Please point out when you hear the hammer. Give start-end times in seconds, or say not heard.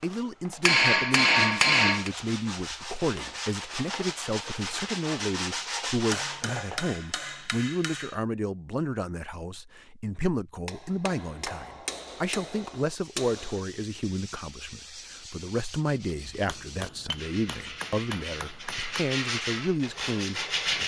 0.6-2.1, 6.1-8.2, 10.7-13.6, 16.4-19.1.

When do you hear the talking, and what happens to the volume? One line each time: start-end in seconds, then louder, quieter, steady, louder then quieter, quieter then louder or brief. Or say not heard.
0.0-20.8 steady.